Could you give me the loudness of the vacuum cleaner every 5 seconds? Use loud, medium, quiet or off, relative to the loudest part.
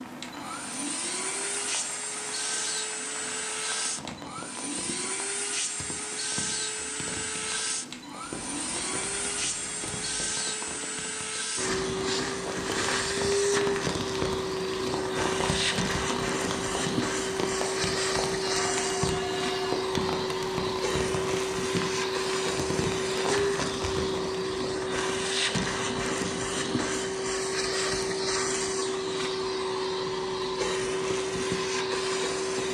medium, medium, loud, loud, loud, loud, loud.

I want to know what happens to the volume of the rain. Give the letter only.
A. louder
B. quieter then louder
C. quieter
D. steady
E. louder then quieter
A.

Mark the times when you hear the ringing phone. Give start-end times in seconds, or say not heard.
8.3-10.3, 18.4-19.8.